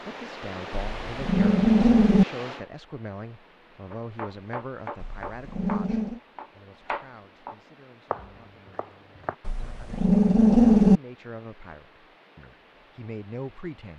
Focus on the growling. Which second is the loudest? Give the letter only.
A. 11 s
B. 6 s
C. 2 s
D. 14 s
A.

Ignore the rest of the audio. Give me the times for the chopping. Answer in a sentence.
The chopping can be heard from 3.9 to 9.3 s.